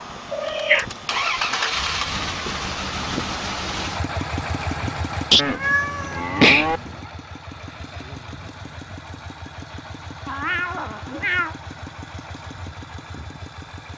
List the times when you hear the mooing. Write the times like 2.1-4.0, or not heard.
5.3-6.8.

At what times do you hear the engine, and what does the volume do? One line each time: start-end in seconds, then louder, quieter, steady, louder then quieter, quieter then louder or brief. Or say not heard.
0.0-13.9 quieter.